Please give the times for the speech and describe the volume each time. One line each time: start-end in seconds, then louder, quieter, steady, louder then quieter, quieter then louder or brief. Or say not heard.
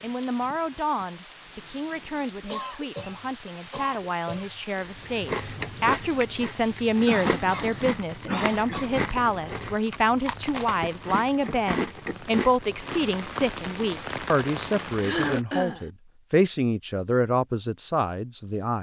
0.0-18.7 louder.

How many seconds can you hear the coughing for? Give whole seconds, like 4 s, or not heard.
5 s.